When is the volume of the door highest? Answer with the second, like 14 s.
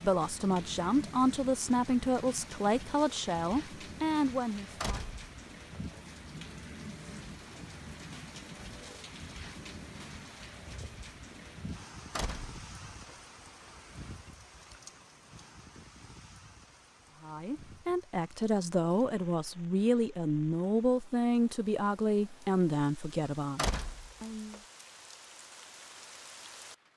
24 s.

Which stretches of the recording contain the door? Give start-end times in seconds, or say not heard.
4.8-5.8, 12.2-13.2, 23.6-24.6.